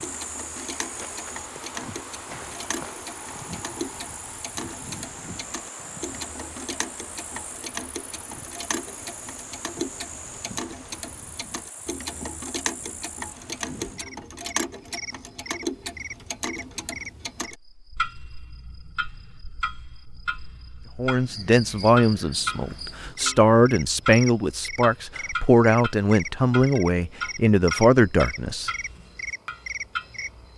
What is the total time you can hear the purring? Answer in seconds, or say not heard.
not heard.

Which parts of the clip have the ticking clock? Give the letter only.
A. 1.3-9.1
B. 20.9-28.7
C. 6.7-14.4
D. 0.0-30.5
D.